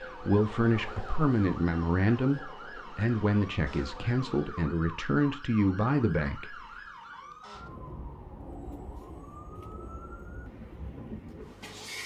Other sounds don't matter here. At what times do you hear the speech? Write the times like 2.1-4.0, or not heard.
0.0-6.6.